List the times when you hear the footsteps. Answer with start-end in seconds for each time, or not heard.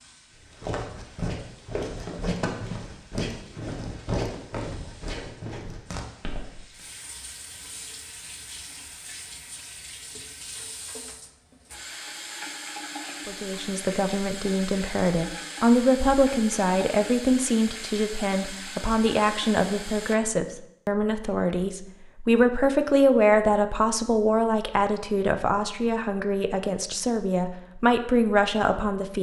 0.4-6.8.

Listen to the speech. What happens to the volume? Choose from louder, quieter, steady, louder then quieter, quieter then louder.
steady.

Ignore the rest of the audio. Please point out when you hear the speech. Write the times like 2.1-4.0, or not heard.
13.2-29.1.